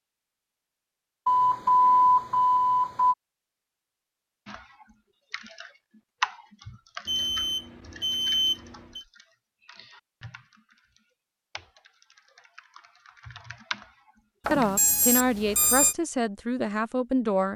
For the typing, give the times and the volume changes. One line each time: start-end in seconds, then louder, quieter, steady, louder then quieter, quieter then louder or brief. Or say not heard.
4.5-14.7 quieter then louder.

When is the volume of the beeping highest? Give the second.
2 s.